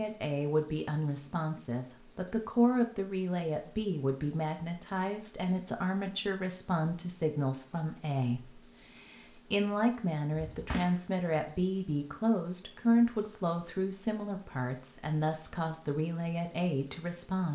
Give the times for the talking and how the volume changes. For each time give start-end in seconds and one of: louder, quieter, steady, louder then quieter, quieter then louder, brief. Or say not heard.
0.0-17.5 steady.